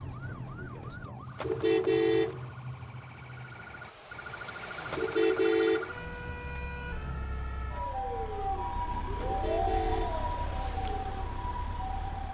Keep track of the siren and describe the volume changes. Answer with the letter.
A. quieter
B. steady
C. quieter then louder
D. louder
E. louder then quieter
D.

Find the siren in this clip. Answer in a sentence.
The siren can be heard from 0.0 to 12.3 s.